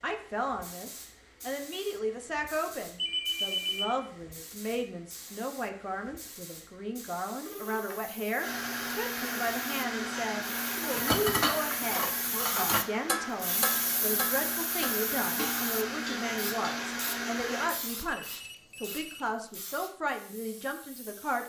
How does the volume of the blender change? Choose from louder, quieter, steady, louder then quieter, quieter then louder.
quieter then louder.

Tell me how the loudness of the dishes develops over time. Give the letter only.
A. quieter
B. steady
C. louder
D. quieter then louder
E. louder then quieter
A.